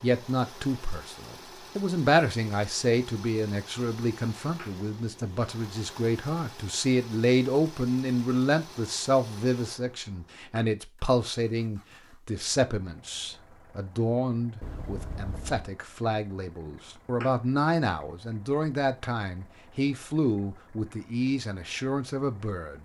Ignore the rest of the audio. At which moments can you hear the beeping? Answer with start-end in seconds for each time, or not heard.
14.6-15.7.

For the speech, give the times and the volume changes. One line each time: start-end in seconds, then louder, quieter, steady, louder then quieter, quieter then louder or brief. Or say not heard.
0.0-22.7 steady.